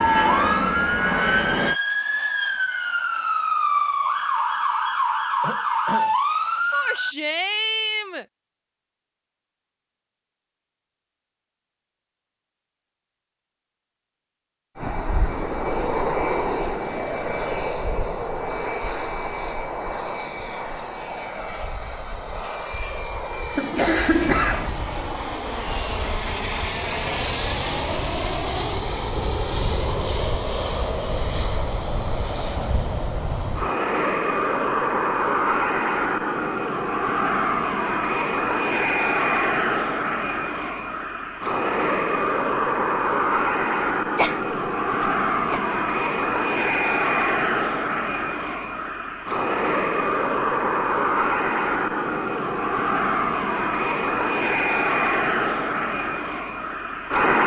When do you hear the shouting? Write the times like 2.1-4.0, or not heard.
6.7-8.2.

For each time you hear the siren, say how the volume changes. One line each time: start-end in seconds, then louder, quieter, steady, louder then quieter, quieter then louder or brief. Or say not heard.
0.0-7.2 steady.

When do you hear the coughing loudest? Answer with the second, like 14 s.
24 s.